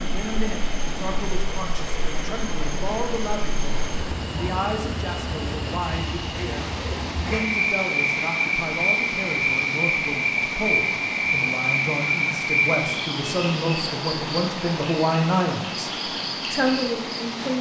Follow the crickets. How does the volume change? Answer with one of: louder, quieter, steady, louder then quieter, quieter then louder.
louder then quieter.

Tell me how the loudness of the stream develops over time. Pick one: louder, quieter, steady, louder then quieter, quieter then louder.
steady.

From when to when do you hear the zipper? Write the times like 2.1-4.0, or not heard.
6.3-7.5.